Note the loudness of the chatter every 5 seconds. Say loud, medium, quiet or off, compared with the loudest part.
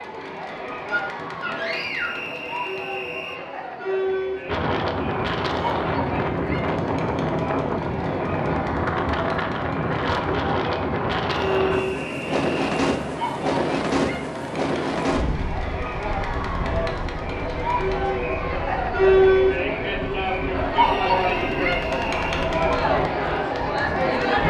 medium, medium, medium, loud, loud.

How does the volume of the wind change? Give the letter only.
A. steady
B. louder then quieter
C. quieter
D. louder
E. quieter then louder
C.